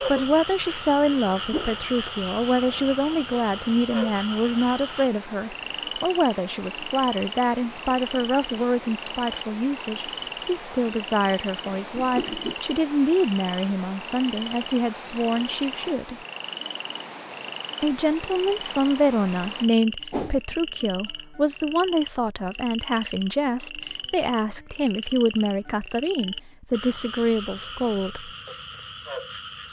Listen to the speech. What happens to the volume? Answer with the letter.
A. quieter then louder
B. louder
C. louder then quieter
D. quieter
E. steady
E.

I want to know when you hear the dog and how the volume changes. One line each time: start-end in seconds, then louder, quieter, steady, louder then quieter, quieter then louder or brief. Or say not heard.
not heard.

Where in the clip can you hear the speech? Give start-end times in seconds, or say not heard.
0.1-16.2, 17.8-28.3.